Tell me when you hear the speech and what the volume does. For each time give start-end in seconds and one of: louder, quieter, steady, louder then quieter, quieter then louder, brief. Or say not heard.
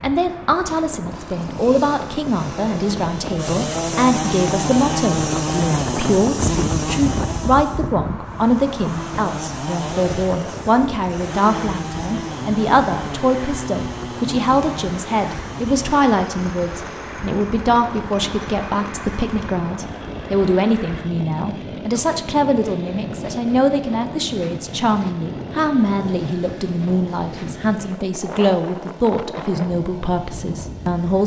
0.0-31.2 steady.